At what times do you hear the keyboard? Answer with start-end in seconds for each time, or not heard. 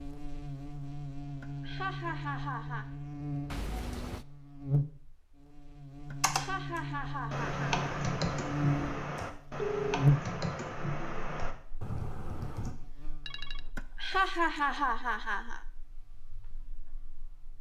6.2-12.8.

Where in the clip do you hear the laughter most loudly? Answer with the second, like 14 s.
14 s.